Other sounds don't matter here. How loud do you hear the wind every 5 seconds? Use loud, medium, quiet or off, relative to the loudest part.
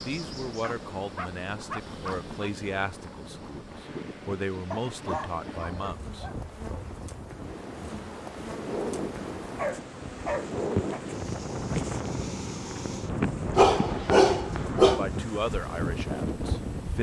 medium, medium, loud, loud.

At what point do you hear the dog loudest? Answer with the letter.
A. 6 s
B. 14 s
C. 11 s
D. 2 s
B.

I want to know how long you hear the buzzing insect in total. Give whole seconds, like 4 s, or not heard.
17 s.